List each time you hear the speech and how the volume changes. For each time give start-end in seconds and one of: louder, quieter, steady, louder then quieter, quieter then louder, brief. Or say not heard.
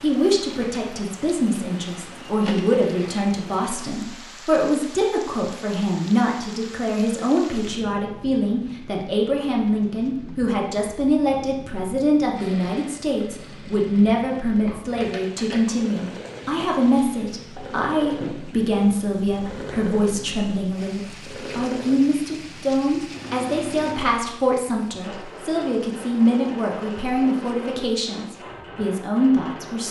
0.0-29.8 steady.